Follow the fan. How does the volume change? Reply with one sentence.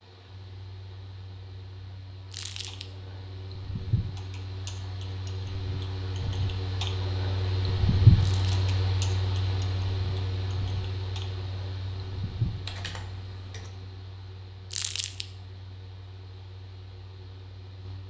The loudness of the fan goes up, then down.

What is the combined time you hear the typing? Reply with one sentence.
The typing can be heard for 11 seconds in total.